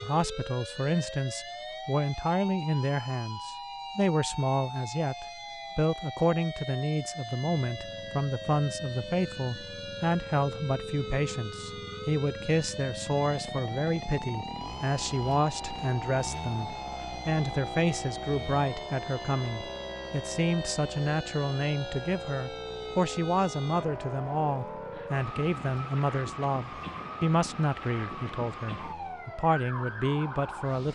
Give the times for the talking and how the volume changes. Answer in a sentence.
You can hear the talking from 0.0 to 30.9 s, at a steady volume.